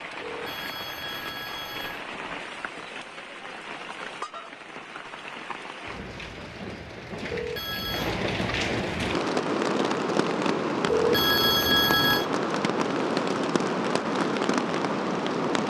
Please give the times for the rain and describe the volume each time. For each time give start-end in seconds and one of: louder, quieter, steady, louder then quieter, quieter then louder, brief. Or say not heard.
0.0-15.6 louder.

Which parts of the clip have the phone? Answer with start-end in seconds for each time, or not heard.
0.2-2.0, 7.2-8.2, 10.8-12.2.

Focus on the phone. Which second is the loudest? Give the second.
12 s.